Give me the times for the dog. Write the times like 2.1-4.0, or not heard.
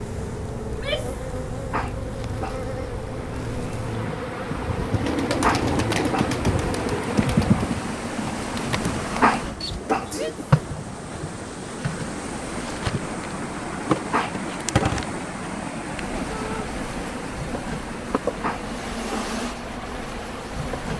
1.7-2.6, 5.4-6.3, 9.2-10.1, 14.1-15.0, 18.4-19.3.